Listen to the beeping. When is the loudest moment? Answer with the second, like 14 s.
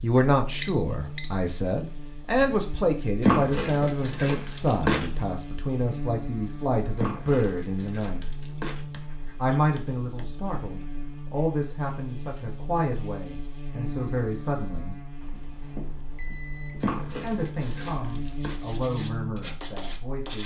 1 s.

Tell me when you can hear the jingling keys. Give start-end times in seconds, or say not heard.
3.2-5.1, 7.0-8.8, 16.8-18.6.